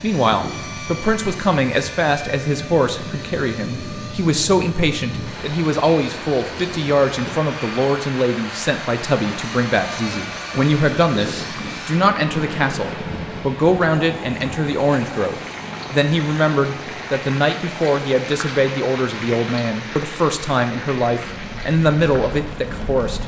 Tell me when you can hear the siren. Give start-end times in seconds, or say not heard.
not heard.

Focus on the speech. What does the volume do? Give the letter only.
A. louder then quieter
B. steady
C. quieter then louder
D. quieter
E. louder
B.